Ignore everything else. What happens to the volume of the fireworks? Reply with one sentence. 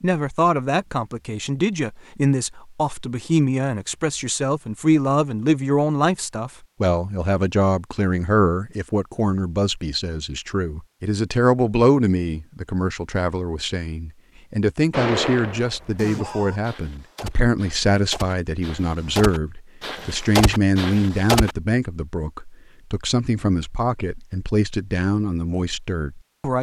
The volume of the fireworks goes down, then up.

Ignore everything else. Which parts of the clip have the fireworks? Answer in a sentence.
The fireworks can be heard from 14.9 to 21.6 s.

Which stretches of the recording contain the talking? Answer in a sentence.
You can hear the talking from 0.0 to 26.5 s.